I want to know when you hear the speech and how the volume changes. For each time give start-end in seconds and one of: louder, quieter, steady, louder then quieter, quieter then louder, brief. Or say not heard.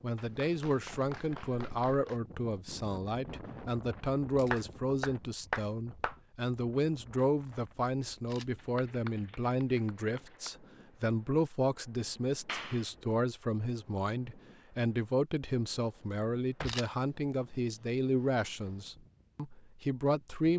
0.0-20.5 steady.